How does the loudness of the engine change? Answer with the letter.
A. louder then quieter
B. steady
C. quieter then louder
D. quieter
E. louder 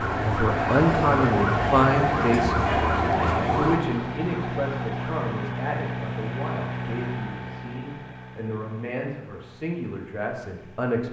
D.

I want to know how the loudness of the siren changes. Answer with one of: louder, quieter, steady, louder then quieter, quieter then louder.
quieter.